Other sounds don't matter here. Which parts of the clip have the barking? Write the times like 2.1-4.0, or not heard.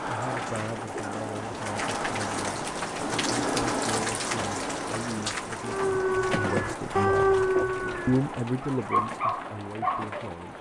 5.6-10.2.